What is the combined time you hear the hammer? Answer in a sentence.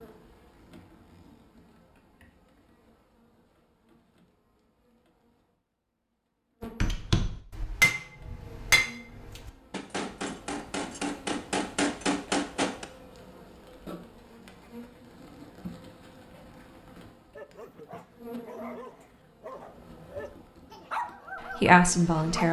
The hammer can be heard for 6 seconds in total.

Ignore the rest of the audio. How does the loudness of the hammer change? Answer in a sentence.
The volume of the hammer goes down, then up.